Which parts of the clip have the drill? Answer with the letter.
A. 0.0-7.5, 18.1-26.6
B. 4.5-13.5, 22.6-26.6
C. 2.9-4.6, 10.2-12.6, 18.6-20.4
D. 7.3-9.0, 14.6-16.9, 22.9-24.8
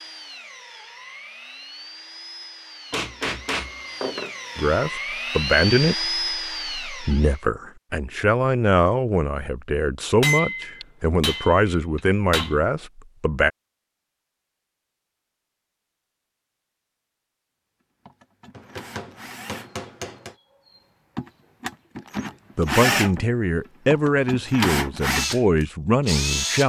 A.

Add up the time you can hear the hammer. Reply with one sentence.
You can hear the hammer for 6 seconds altogether.